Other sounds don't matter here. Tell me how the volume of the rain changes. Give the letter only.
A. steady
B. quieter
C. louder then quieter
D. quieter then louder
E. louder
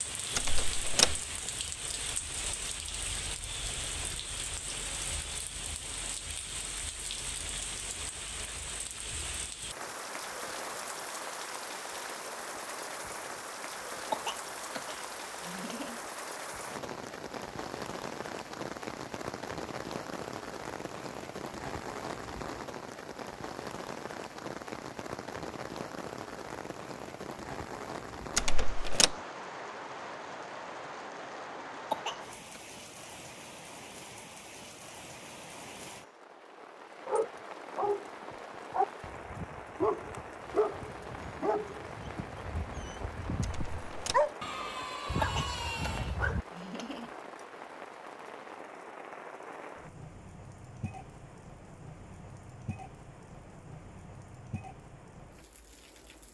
B.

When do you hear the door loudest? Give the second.
1 s.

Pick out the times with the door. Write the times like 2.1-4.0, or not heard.
0.3-1.2, 28.4-29.1, 43.4-44.3.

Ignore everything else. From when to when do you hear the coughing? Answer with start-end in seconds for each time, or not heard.
14.1-16.0, 31.9-32.6, 45.2-47.1.